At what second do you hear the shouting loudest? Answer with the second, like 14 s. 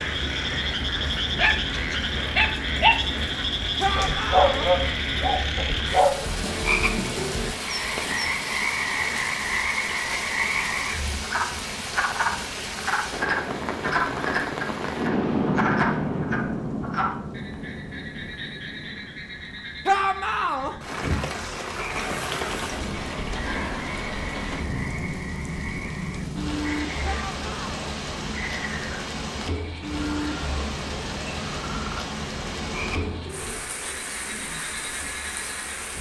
20 s.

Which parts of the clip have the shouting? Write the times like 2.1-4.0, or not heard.
3.8-4.7, 19.9-20.8, 27.0-27.9.